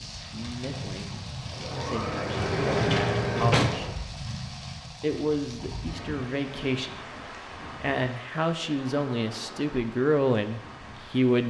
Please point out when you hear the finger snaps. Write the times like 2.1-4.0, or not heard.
not heard.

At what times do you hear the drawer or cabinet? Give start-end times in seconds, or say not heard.
2.4-3.9.